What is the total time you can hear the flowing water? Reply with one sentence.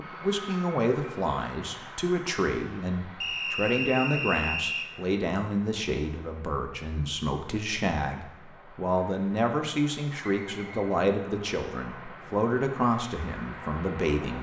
You can't hear the flowing water here.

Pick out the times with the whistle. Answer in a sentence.
You can hear the whistle from 3.2 to 4.9 s and from 10.2 to 11.0 s.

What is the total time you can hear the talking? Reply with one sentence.
The talking can be heard for 14 seconds in total.